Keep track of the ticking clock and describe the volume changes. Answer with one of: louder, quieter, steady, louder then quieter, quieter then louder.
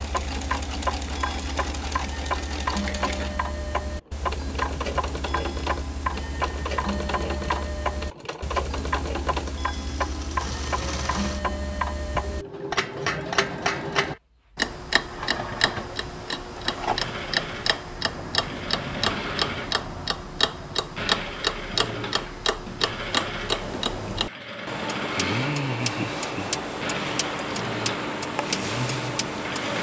steady.